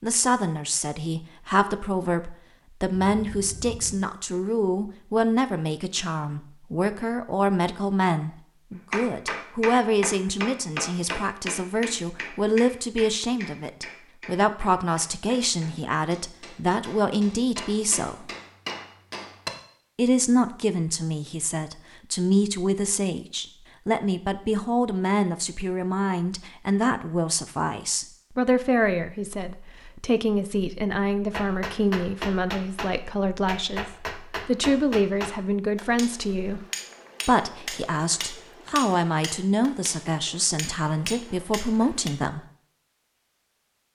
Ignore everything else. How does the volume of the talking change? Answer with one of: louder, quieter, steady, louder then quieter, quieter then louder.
steady.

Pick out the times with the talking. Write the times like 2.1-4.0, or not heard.
0.0-18.3, 19.9-36.6, 37.2-42.5.